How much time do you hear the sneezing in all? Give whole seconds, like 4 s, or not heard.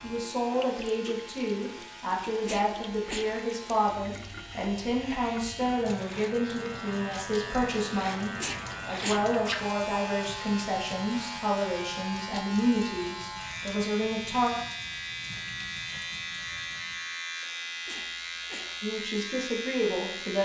3 s.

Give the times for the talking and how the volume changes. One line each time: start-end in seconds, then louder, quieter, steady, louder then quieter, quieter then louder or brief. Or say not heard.
0.0-14.5 steady
18.8-20.4 brief.